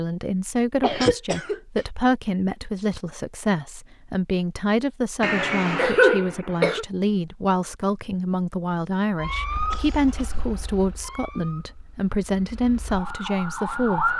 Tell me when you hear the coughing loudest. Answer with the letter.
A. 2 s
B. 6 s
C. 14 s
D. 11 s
B.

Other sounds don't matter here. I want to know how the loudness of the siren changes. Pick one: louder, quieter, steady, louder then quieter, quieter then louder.
quieter then louder.